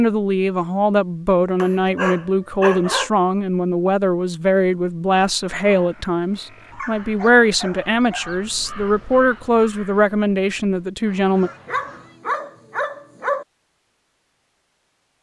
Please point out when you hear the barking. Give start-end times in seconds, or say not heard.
1.6-3.1, 6.7-8.4, 11.4-13.4.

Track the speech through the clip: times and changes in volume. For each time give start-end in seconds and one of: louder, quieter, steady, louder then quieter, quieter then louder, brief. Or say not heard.
0.0-11.5 steady.